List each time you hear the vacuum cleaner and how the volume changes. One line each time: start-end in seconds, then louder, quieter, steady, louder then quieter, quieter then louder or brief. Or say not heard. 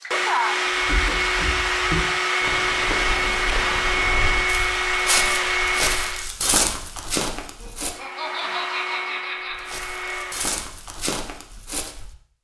0.0-6.3 steady
7.9-10.7 brief.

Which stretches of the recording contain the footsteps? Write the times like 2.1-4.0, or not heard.
0.8-8.0, 9.5-12.2.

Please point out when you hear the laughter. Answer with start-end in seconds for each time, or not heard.
7.6-9.7.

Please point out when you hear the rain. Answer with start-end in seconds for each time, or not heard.
not heard.